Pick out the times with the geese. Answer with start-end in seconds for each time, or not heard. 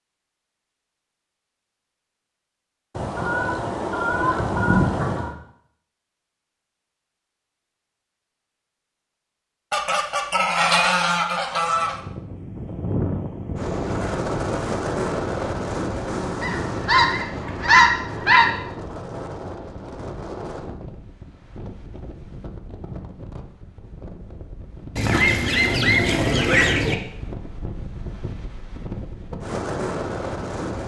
3.0-5.3, 9.7-11.9, 16.4-18.6, 24.9-26.9.